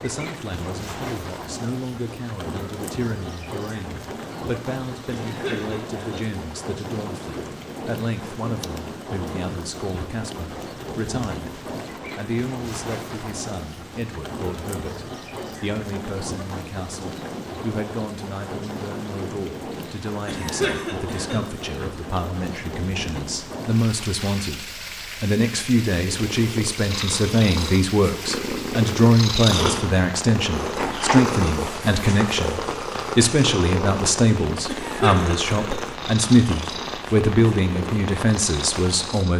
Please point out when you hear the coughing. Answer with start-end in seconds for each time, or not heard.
5.1-6.2, 20.2-21.4, 34.6-35.8.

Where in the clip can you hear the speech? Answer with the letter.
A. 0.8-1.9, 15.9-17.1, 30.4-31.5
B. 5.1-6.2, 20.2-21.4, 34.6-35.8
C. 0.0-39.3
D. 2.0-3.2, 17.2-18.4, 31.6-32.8
C.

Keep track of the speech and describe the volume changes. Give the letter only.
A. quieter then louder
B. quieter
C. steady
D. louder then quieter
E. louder
E.